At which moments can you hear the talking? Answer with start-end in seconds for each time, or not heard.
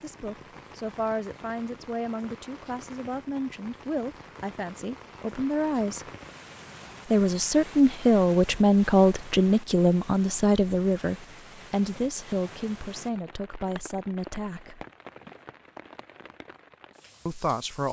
0.0-6.0, 7.0-14.8, 17.2-17.8.